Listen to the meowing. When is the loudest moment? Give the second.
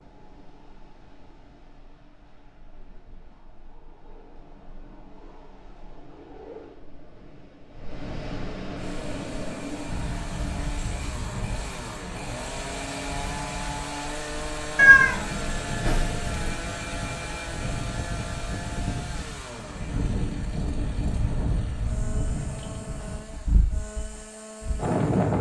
15 s.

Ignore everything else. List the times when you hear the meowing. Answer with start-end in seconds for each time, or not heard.
14.8-16.6.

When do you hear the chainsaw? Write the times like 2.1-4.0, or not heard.
8.8-25.3.